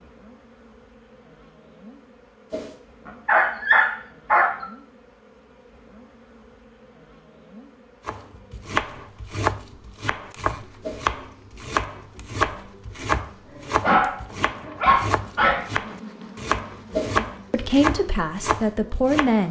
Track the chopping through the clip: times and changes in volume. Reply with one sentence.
The chopping can be heard from 8.1 to 19.4 s, at a steady volume.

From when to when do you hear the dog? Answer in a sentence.
You can hear the dog from 3.0 to 4.7 s and from 13.6 to 15.7 s.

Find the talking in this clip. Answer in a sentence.
The talking can be heard from 17.5 to 19.4 s.